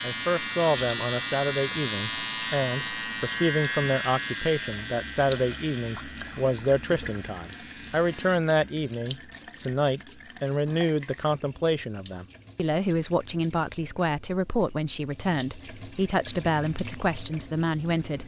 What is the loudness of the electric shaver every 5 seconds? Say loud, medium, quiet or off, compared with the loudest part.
loud, quiet, off, off.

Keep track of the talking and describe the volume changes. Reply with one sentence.
The loudness of the talking stays about the same.